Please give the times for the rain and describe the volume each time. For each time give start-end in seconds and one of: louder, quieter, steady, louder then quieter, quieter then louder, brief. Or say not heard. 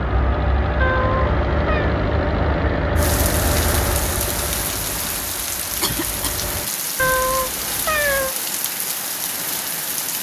3.0-10.1 steady.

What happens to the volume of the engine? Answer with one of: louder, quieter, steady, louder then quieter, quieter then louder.
quieter.